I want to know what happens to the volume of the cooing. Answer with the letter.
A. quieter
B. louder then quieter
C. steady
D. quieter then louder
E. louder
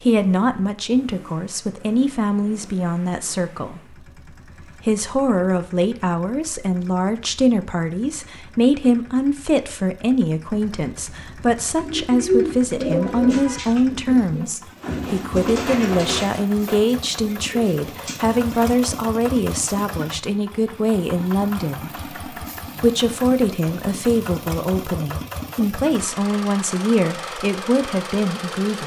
A.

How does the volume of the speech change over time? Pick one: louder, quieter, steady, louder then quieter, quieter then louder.
steady.